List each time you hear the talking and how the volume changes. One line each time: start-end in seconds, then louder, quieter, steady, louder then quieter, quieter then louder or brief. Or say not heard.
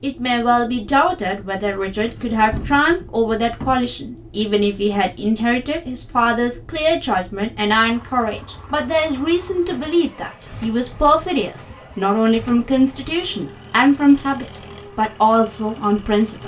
0.0-16.4 steady.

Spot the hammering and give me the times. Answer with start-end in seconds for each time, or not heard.
not heard.